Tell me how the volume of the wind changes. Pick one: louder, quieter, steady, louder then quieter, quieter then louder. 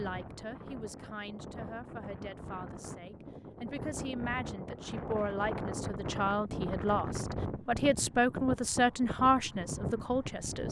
louder.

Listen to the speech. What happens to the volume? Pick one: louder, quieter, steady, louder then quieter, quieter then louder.
louder.